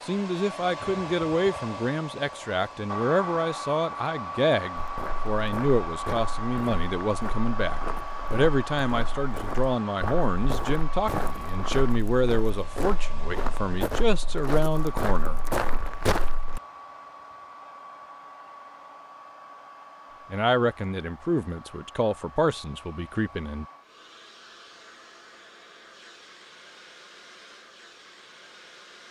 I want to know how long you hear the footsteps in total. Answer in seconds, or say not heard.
12 s.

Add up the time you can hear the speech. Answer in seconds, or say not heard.
19 s.